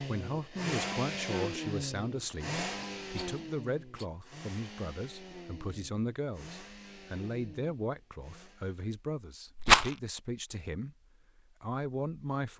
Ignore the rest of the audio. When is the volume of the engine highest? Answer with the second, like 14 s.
1 s.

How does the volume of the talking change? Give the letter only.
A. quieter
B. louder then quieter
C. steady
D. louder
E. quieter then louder
C.